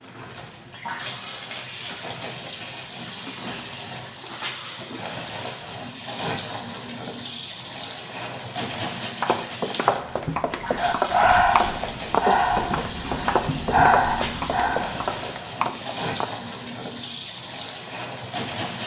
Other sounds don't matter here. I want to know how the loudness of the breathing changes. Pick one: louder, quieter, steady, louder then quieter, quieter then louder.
quieter then louder.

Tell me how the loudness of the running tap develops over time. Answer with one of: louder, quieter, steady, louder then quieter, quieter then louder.
steady.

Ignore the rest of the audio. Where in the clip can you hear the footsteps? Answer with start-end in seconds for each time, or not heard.
9.2-16.2.